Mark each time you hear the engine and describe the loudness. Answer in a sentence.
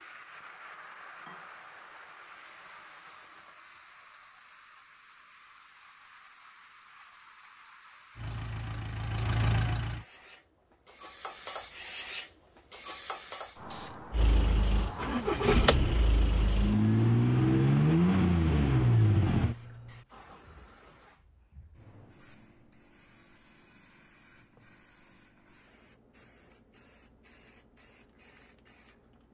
You can hear the engine briefly from 8.2 to 10.1 s; and from 14.1 to 19.6 s, getting louder.